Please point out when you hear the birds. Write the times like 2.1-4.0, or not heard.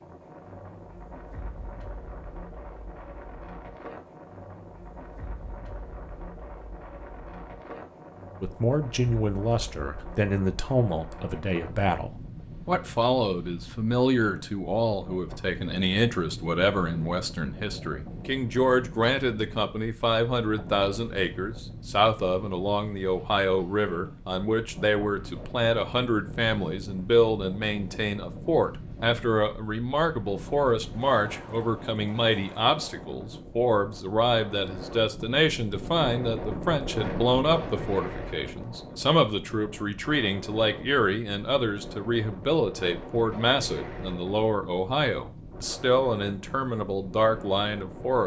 not heard.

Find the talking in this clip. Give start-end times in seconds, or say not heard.
8.4-48.2.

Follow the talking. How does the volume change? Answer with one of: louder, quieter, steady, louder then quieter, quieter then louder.
steady.